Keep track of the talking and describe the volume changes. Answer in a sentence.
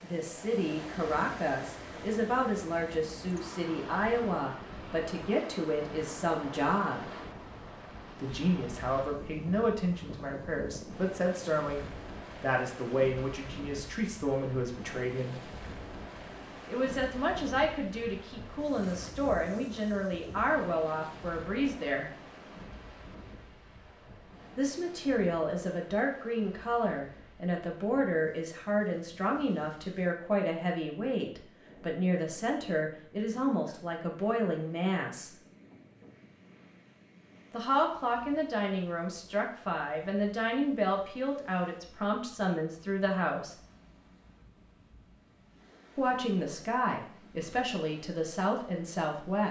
The volume of the talking stays about the same.